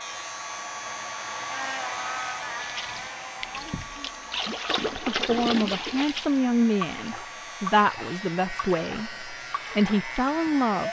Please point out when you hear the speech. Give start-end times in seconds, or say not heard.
5.0-10.8.